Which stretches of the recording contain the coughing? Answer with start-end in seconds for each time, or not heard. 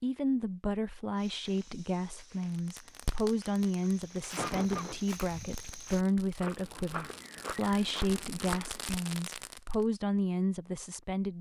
4.3-5.0.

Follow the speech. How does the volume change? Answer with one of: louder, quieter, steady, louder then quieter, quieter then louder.
steady.